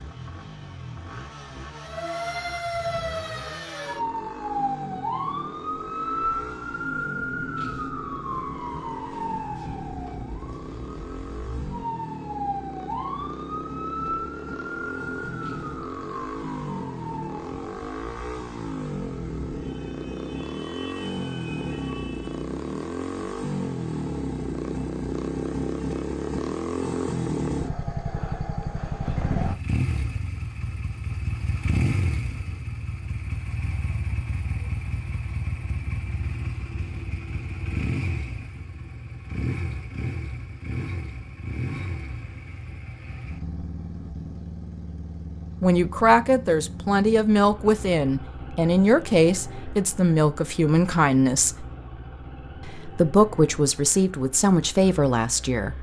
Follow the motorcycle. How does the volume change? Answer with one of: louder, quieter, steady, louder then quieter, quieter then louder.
louder then quieter.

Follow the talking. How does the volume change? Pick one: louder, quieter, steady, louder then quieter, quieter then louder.
steady.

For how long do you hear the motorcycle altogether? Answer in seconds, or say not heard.
56 s.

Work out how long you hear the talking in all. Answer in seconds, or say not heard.
9 s.